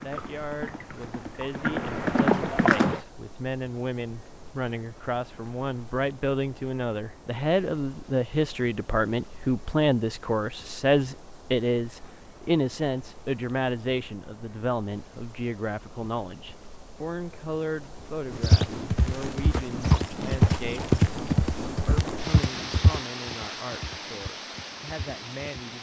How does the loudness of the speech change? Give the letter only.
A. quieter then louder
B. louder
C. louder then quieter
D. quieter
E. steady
C.